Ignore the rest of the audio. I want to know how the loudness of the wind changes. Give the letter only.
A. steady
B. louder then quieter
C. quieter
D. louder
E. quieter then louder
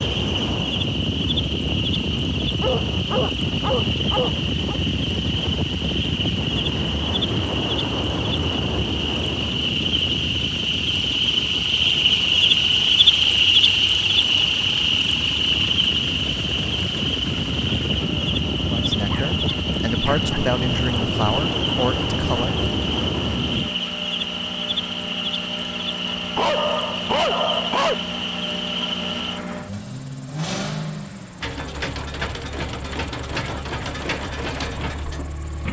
E.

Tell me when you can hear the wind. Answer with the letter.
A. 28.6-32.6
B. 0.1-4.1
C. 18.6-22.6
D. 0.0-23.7
D.